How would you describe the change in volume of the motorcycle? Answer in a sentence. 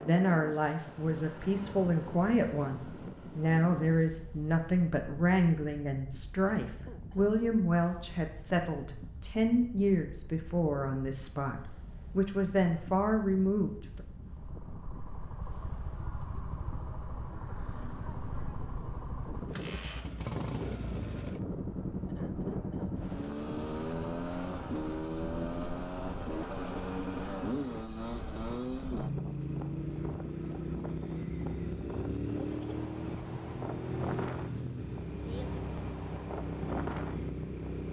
The volume of the motorcycle goes up.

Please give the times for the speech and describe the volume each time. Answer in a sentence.
The speech can be heard from 0.0 to 14.0 s, at a steady volume.